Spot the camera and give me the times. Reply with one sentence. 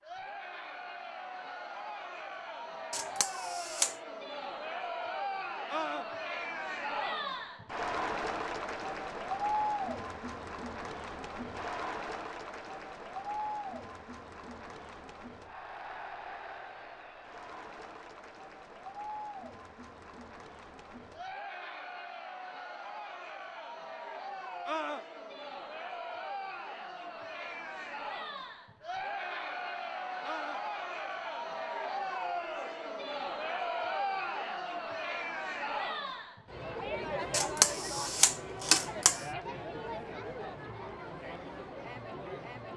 The camera can be heard from 2.9 to 4.0 s and from 37.3 to 39.2 s.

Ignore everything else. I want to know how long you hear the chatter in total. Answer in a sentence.
You can hear the chatter for 43 seconds altogether.